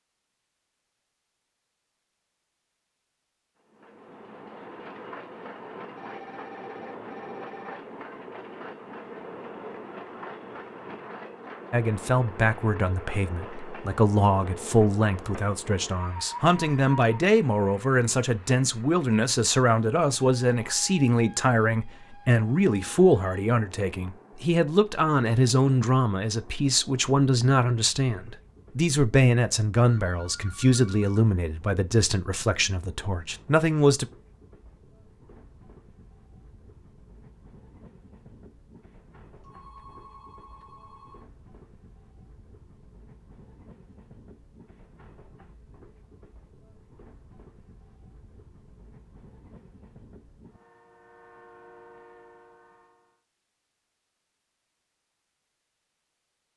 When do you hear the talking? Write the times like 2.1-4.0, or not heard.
11.7-34.0.